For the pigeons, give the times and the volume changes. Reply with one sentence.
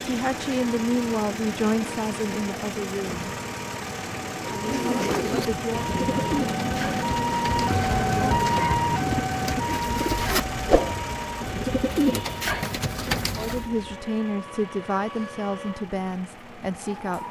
The pigeons can be heard from 4.3 to 13.7 s, getting quieter then louder.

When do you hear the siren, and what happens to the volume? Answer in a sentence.
You can hear the siren from 0.0 to 17.2 s, getting louder then quieter.